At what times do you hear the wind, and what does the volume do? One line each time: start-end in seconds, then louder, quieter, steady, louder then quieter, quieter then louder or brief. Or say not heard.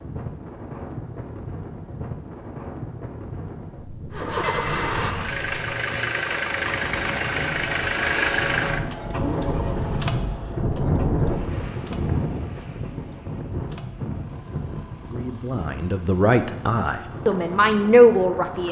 0.0-18.6 louder then quieter.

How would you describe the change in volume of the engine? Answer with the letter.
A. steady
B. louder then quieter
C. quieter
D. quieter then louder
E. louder
C.